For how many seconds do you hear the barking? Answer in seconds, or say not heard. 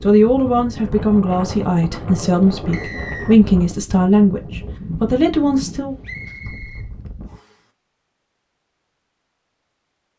not heard.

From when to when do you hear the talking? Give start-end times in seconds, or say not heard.
0.0-6.0.